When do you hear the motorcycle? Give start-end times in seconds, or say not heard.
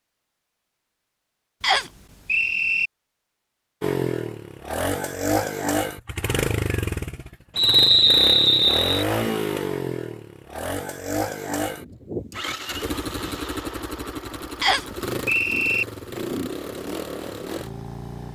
3.8-18.3.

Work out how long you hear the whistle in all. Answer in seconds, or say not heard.
4 s.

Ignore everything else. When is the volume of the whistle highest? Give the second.
8 s.